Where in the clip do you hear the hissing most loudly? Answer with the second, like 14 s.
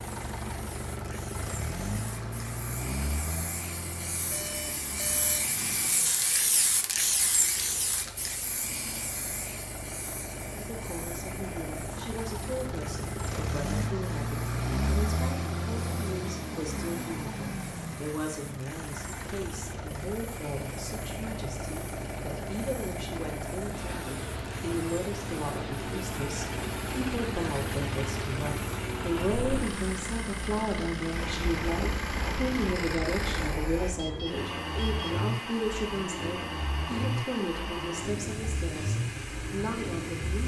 7 s.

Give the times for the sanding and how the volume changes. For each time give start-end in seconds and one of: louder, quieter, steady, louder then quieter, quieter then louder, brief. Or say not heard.
not heard.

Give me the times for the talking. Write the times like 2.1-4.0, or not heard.
10.6-40.4.